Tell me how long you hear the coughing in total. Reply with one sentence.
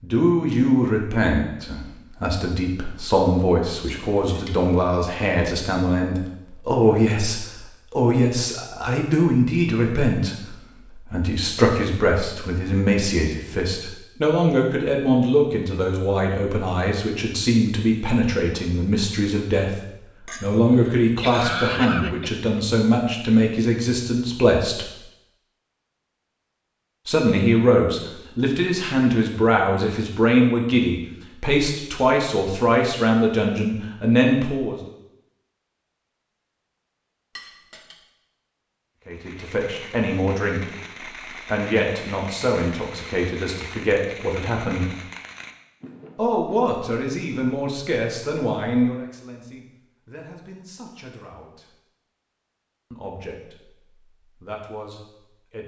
The coughing can be heard for 2 seconds in total.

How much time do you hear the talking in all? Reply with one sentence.
You can hear the talking for 46 seconds altogether.